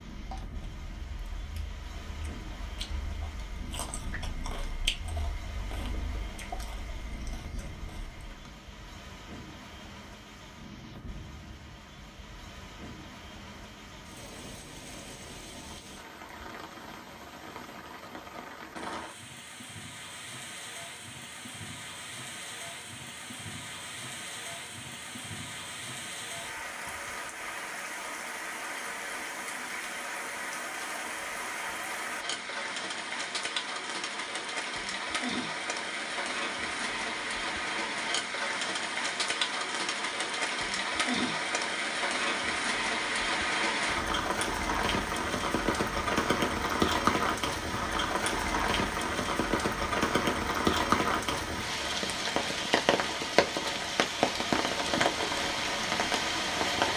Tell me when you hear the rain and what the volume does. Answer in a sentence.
You can hear the rain from 0.0 to 56.9 s, getting louder.